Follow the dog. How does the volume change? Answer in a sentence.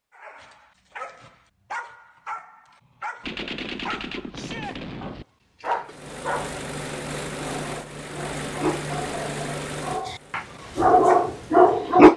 The volume of the dog goes up.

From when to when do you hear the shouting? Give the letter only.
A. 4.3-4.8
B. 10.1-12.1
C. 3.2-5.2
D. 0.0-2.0
A.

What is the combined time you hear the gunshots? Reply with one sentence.
The gunshots can be heard for 2 seconds in total.